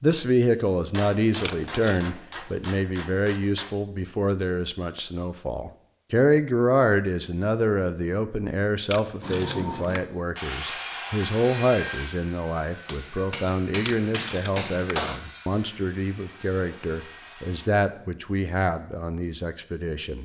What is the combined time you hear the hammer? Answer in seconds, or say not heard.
5 s.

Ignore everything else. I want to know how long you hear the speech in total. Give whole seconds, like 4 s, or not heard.
20 s.